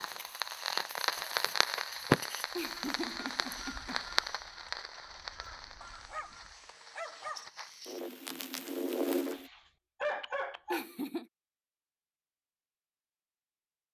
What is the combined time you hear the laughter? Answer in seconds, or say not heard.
2 s.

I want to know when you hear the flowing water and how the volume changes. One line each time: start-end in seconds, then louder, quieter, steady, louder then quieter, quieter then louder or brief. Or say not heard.
not heard.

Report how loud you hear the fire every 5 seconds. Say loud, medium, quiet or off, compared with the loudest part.
loud, medium, off.